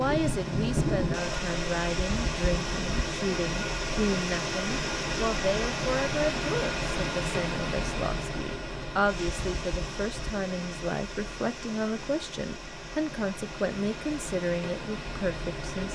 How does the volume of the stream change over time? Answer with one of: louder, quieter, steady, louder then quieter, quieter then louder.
quieter.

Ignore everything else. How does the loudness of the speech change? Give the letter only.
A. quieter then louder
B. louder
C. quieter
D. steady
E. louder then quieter
D.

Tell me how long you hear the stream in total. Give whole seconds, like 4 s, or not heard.
16 s.